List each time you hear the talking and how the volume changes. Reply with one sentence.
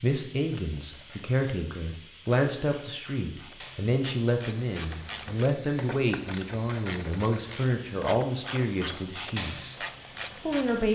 The talking can be heard from 0.0 to 9.8 s, at a steady volume; and briefly from 10.4 to 10.9 s.